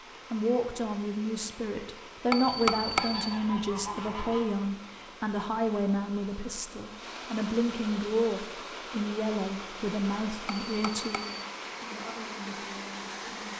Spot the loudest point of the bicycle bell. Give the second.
3 s.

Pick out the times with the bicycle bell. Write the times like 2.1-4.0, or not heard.
2.3-3.4, 10.4-11.4.